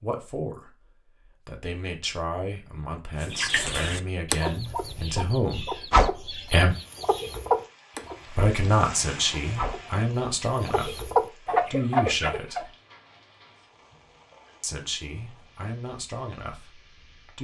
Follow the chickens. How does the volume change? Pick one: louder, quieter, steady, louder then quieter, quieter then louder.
quieter then louder.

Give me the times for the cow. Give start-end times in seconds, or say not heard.
not heard.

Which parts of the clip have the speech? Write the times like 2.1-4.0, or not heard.
0.0-0.7, 1.4-6.8, 8.3-11.1, 11.7-12.7, 14.6-17.3.